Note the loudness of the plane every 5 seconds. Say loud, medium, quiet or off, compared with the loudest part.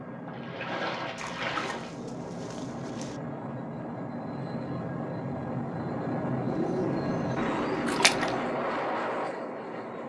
medium, loud.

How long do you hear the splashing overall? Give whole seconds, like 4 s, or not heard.
2 s.